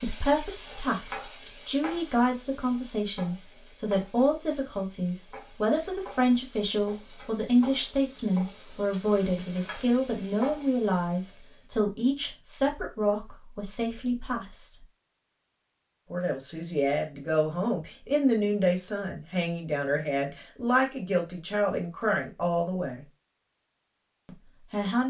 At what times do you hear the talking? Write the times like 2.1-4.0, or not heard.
0.0-14.8, 16.1-23.1, 24.2-25.0.